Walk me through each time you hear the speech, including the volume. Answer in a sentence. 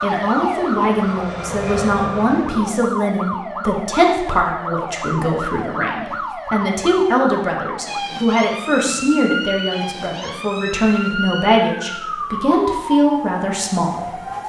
You can hear the speech from 0.0 to 14.2 s, at a steady volume.